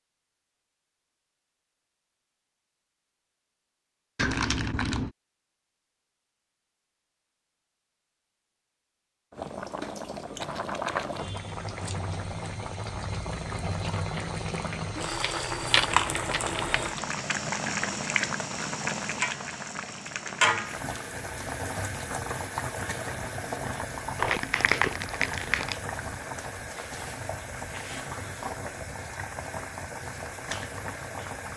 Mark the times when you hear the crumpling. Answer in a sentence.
The crumpling can be heard from 4.2 to 5.1 s, from 15.2 to 17.2 s and from 24.1 to 25.8 s.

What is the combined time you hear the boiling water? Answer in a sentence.
You can hear the boiling water for 22 seconds altogether.